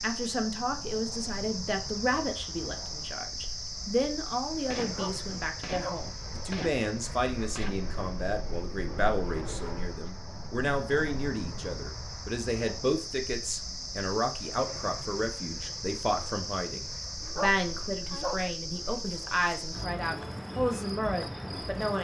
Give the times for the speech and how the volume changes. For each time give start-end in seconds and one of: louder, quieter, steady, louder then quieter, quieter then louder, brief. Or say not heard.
0.0-21.9 steady.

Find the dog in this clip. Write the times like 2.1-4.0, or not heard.
4.8-6.1, 17.2-18.5.